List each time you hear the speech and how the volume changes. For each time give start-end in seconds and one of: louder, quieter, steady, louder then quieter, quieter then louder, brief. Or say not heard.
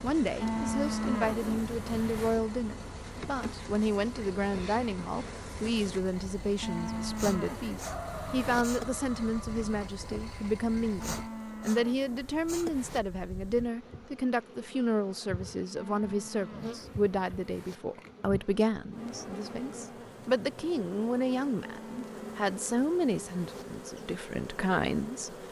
0.0-25.4 steady.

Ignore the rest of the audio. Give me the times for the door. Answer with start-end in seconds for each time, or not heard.
not heard.